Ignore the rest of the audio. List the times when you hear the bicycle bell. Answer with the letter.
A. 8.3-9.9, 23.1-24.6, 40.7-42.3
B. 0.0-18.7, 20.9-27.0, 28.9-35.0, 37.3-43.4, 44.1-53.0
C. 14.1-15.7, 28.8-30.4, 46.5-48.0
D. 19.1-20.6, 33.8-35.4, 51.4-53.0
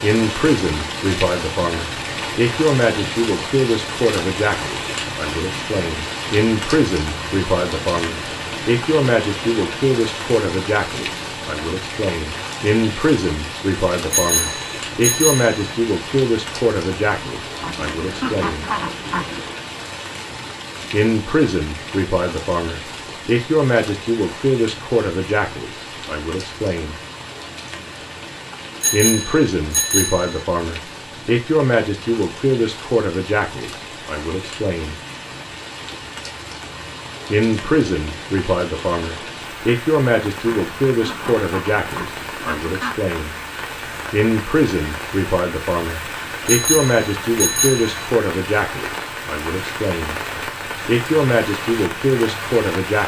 C.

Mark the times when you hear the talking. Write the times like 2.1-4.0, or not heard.
0.0-18.7, 20.9-27.0, 28.9-35.0, 37.3-43.4, 44.1-53.0.